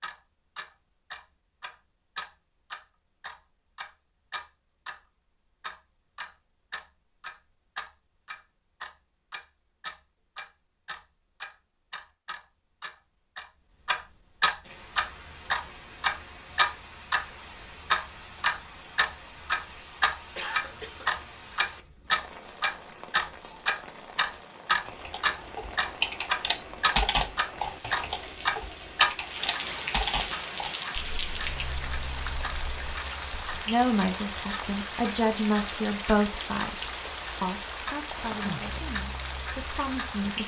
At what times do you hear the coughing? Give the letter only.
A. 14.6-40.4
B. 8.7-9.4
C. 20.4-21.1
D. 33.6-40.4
C.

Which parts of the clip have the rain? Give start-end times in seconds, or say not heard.
14.6-40.4.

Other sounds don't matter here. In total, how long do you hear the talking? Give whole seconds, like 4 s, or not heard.
7 s.